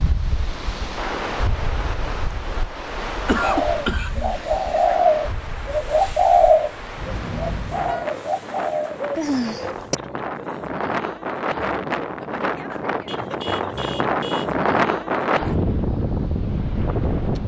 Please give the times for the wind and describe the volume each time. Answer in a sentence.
The wind can be heard from 0.0 to 17.4 s, getting quieter then louder.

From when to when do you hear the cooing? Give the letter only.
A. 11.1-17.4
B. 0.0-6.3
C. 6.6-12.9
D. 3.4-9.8
D.